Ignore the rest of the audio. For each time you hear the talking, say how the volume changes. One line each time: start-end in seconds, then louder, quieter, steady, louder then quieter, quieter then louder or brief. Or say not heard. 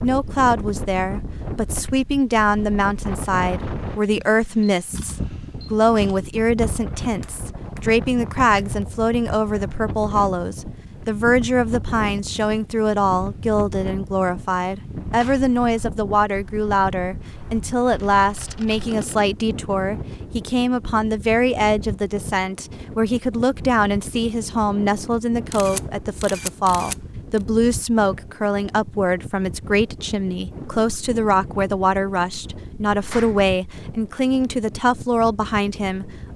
0.0-36.3 steady.